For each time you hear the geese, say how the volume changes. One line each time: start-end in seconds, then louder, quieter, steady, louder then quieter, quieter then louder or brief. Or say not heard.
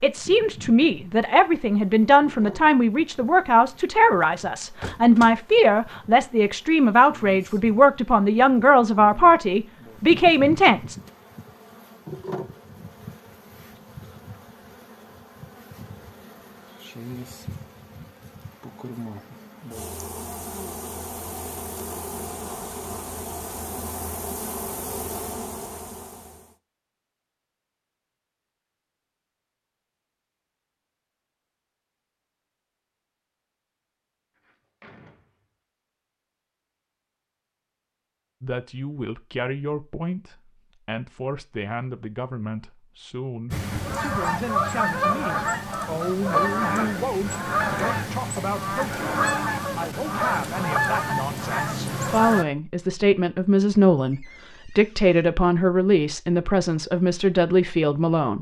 43.5-52.5 steady.